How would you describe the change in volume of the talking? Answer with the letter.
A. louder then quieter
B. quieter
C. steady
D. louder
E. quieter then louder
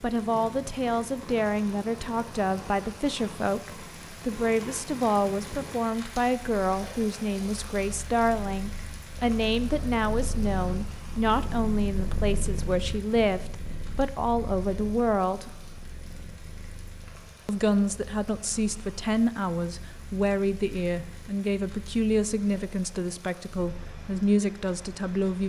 C.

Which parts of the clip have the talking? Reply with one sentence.
You can hear the talking from 0.0 to 15.5 s and from 17.4 to 25.4 s.